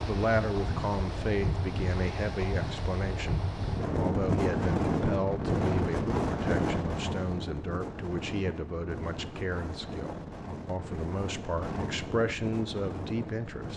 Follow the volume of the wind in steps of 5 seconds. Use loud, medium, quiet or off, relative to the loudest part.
loud, loud, medium.